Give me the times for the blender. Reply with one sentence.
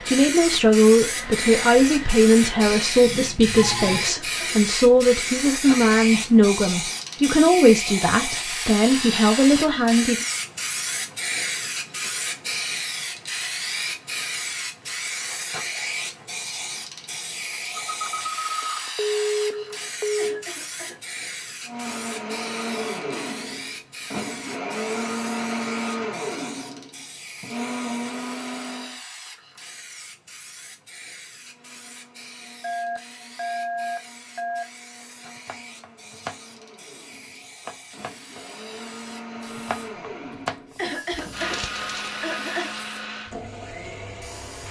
You can hear the blender from 0.0 to 3.0 s, from 21.6 to 29.0 s and from 31.4 to 44.6 s.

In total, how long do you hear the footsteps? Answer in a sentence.
You can't hear the footsteps here.